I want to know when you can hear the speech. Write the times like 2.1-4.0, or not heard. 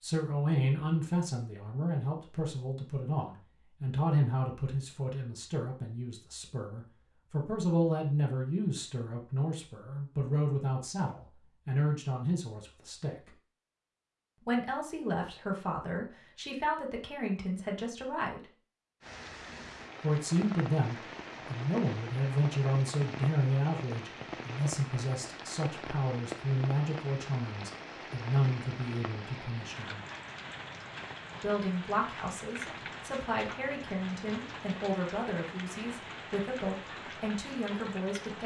0.0-13.3, 14.4-18.4, 20.0-30.0, 31.4-38.4.